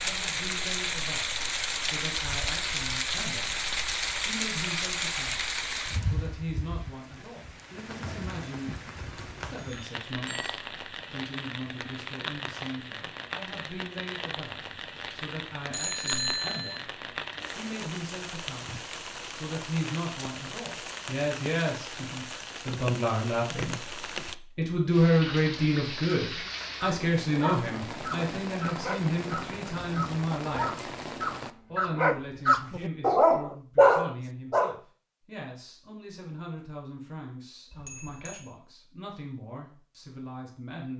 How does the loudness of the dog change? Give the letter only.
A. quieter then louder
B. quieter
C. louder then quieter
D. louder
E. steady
D.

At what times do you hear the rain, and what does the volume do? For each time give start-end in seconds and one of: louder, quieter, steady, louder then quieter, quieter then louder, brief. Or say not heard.
0.0-31.5 quieter.